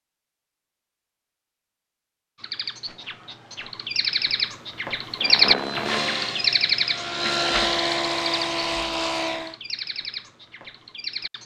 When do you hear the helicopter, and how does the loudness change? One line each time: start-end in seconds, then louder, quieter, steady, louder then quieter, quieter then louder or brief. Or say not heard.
5.2-9.6 quieter then louder.